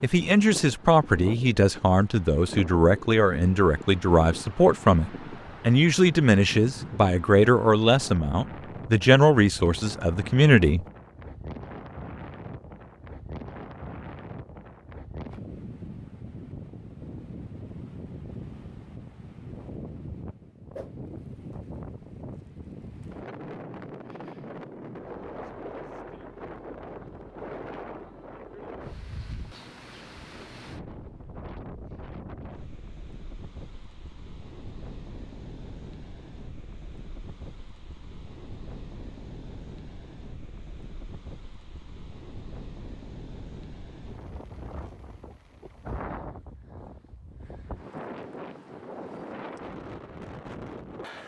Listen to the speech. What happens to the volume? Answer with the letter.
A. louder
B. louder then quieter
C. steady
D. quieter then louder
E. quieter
C.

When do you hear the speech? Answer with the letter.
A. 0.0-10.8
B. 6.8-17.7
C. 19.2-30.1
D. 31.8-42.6
A.